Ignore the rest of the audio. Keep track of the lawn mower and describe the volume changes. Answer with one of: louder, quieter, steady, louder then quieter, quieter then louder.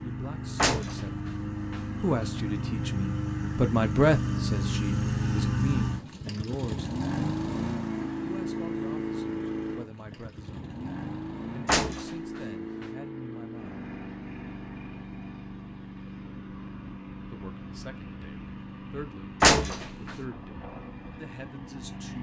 quieter.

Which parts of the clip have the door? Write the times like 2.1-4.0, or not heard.
0.6-2.4, 11.7-12.8, 19.4-20.1.